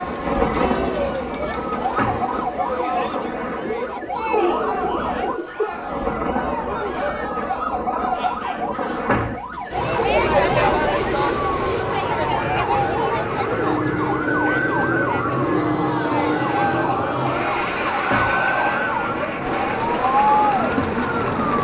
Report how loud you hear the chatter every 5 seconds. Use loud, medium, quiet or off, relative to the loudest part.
medium, medium, loud, medium, loud.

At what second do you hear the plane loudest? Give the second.
16 s.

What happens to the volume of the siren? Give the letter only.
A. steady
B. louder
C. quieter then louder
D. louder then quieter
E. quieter
A.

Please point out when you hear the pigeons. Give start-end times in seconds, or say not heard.
3.6-5.7.